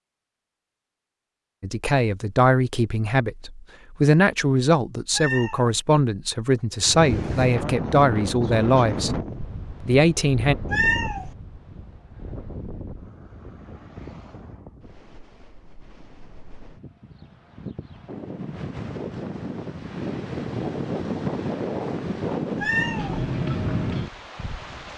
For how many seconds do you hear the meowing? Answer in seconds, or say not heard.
2 s.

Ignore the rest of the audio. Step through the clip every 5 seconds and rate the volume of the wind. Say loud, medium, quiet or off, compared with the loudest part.
off, loud, medium, medium, loud.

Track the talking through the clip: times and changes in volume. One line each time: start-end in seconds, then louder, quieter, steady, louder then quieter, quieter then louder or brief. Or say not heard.
1.6-9.2 steady
9.8-10.6 brief.